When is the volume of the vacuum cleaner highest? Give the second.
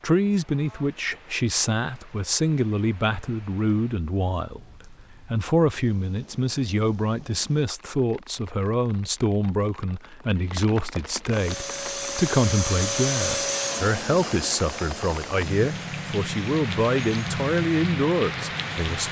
13 s.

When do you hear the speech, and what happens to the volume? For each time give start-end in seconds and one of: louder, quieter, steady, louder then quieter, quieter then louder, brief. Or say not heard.
0.0-19.0 steady.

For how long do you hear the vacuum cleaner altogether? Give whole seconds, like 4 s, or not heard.
8 s.